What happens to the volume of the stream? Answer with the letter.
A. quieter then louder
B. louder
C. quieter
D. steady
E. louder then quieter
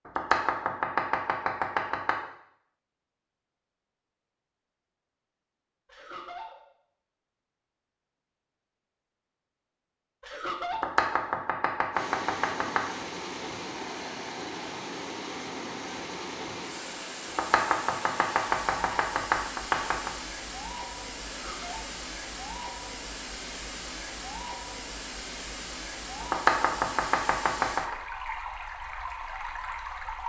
D.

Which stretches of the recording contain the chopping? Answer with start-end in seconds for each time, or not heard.
0.1-2.1, 10.7-13.1, 17.2-20.1, 26.2-27.9.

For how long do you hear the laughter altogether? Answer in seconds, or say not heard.
2 s.